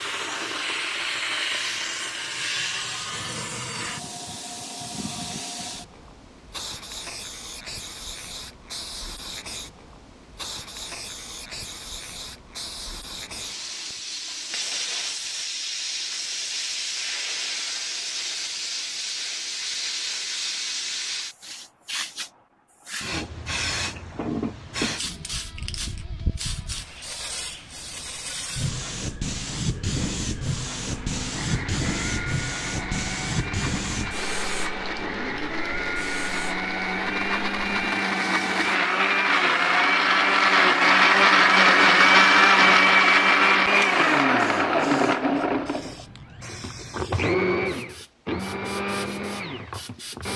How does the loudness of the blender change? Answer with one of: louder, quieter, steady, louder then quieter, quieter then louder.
louder then quieter.